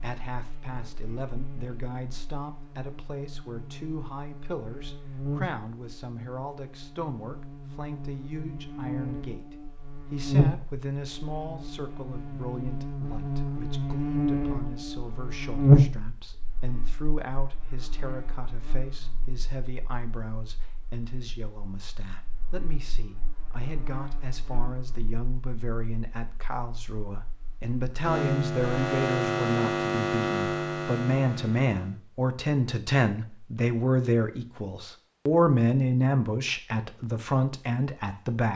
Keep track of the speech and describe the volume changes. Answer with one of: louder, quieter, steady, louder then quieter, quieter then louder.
louder.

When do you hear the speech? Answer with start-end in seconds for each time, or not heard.
0.0-38.5.